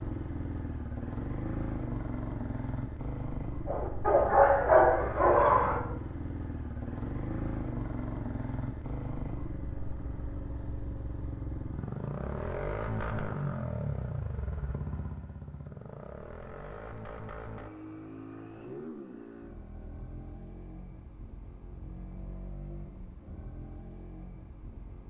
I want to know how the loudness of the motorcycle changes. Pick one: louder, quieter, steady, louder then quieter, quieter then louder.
quieter.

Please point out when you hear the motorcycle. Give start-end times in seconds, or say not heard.
0.0-25.0.